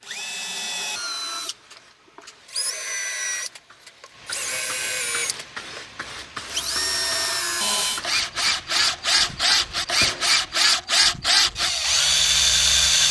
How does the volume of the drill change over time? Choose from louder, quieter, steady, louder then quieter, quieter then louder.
louder.